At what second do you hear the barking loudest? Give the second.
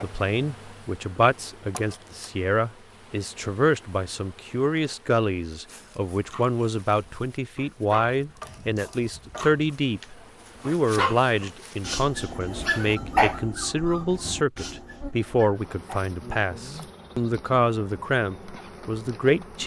13 s.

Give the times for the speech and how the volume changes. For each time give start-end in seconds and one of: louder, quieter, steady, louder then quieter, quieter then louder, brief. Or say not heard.
0.0-19.6 steady.